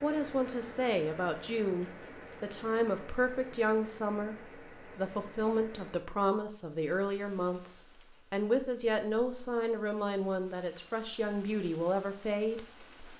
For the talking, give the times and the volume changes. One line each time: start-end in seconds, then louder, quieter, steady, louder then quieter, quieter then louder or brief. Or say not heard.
0.0-13.1 steady.